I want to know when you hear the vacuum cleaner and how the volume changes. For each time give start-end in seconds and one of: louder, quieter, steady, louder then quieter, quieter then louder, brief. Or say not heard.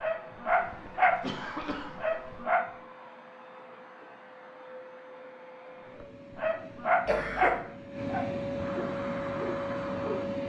0.0-10.4 louder.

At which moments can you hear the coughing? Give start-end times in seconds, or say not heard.
0.5-2.5, 7.0-7.7.